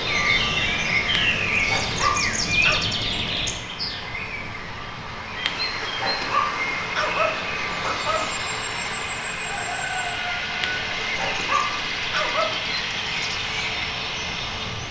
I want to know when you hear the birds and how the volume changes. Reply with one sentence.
You can hear the birds from 0.0 to 14.8 s, getting quieter.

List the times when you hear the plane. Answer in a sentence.
The plane can be heard from 0.0 to 14.8 s.